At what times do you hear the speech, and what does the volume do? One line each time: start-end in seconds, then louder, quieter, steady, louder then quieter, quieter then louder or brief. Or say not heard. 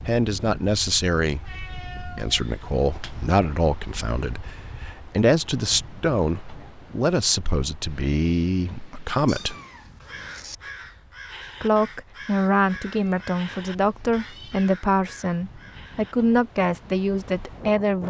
0.1-9.6 steady
11.6-18.0 steady.